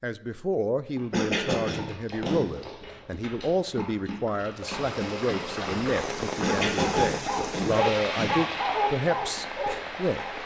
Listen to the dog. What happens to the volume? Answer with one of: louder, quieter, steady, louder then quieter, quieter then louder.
louder.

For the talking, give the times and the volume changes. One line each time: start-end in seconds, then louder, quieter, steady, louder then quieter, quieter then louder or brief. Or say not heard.
0.0-10.4 steady.